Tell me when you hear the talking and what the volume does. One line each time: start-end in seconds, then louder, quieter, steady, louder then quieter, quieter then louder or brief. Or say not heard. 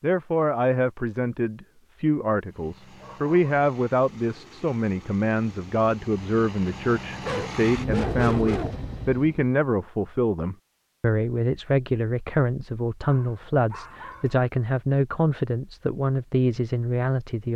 0.0-17.5 steady.